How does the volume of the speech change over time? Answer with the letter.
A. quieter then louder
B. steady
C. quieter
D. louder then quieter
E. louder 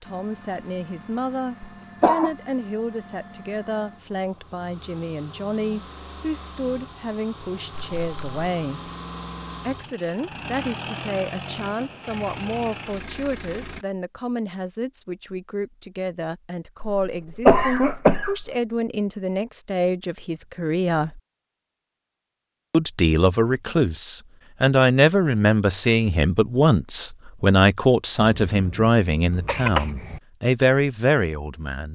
E.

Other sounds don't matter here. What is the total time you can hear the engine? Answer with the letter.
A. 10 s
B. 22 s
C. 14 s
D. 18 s
C.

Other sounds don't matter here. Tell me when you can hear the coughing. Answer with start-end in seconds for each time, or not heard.
1.6-2.3, 16.8-18.5, 28.2-30.2.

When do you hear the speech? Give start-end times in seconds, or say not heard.
0.0-8.9, 9.7-21.2, 22.7-31.8.